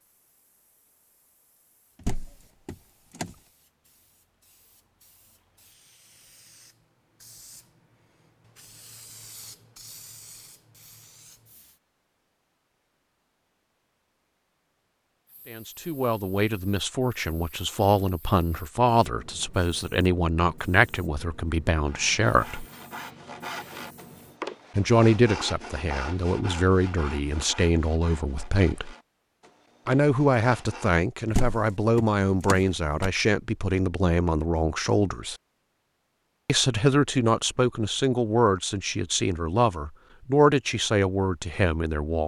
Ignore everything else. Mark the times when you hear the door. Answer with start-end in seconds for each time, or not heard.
2.0-3.4, 31.3-33.1.